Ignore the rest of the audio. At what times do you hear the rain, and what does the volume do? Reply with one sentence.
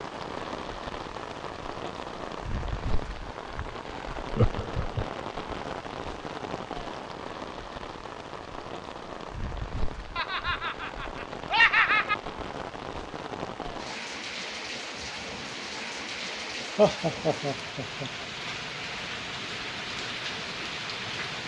You can hear the rain from 0.0 to 21.4 s, at a steady volume.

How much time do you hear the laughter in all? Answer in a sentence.
The laughter can be heard for 4 seconds in total.